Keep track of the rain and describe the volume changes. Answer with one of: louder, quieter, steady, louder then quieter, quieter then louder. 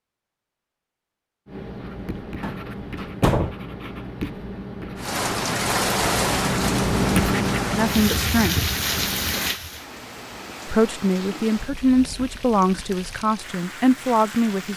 quieter.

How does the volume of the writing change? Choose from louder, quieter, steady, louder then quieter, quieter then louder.
louder then quieter.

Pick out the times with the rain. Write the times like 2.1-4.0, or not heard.
5.0-14.7.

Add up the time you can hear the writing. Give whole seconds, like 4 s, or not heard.
8 s.